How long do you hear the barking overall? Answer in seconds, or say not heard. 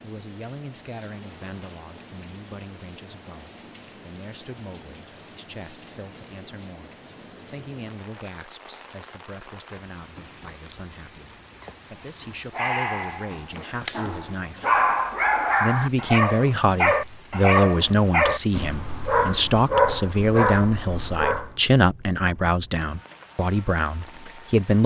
9 s.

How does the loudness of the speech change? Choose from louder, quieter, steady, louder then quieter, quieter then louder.
louder.